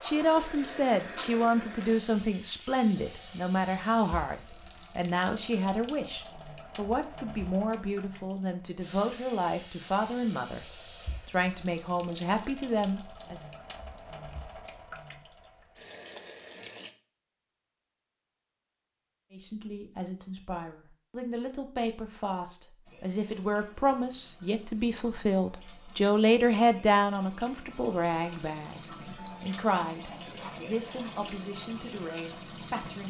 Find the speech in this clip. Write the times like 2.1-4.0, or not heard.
0.0-13.4, 19.3-33.0.